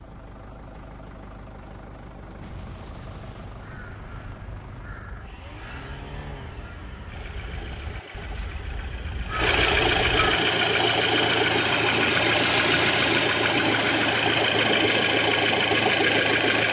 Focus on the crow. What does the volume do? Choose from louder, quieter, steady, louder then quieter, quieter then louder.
louder.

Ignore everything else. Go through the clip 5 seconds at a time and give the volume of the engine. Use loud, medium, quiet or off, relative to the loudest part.
quiet, medium, loud, loud.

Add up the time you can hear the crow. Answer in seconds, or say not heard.
7 s.